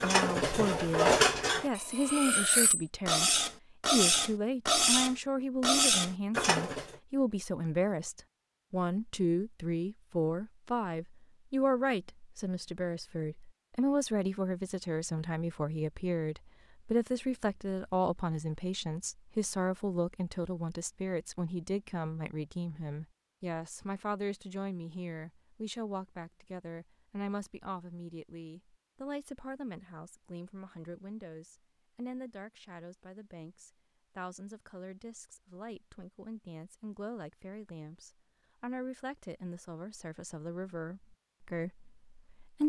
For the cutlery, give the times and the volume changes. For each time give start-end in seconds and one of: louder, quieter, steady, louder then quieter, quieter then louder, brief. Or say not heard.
0.0-7.0 quieter then louder.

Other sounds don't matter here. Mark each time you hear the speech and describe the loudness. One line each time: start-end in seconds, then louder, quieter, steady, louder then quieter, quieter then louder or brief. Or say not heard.
0.0-42.6 quieter.